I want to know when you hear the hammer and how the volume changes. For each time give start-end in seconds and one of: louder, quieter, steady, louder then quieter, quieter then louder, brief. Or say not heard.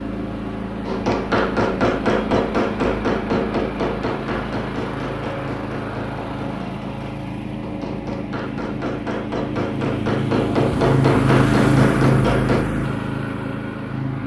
0.8-12.7 quieter then louder.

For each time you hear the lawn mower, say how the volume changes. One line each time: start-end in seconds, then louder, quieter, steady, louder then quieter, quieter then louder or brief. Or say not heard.
0.0-14.2 louder.